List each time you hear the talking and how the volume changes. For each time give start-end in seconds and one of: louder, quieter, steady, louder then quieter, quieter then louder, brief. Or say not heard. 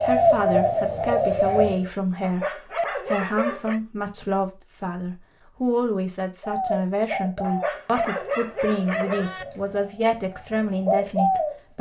0.0-11.7 steady.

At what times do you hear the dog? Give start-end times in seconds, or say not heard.
2.2-3.8, 7.4-9.4.